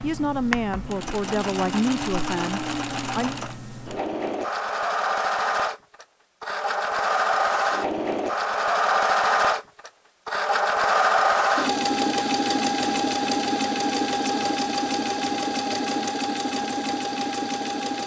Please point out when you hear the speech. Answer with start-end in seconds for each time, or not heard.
0.0-3.4.